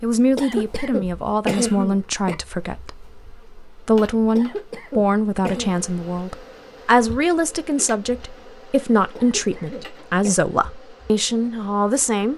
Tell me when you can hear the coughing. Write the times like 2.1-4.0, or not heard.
0.3-2.4, 4.3-5.7, 9.2-10.3.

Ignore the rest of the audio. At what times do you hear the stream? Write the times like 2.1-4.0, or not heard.
not heard.